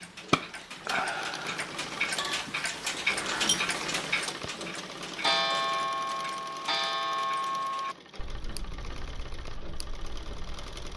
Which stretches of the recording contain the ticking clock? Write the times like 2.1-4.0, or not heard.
0.0-10.9.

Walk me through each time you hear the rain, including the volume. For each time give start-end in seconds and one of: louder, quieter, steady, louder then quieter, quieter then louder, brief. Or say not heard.
not heard.